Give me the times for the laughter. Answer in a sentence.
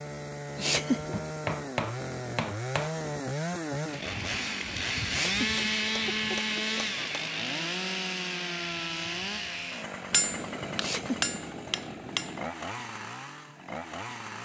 You can hear the laughter from 0.6 to 1.2 s, from 5.0 to 6.8 s and from 10.8 to 11.3 s.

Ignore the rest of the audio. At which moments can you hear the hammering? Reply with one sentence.
You can hear the hammering from 1.1 to 3.0 s, from 5.5 to 7.3 s and from 10.1 to 12.4 s.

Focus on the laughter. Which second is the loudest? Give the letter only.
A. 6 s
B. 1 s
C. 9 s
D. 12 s
B.